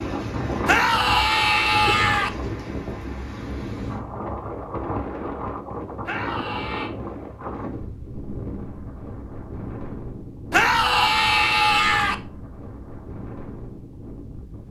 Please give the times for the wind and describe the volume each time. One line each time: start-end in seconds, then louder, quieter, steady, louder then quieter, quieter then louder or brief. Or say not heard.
0.0-14.6 quieter.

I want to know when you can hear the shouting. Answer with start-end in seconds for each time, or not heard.
0.7-2.3, 6.0-6.9, 10.5-12.2.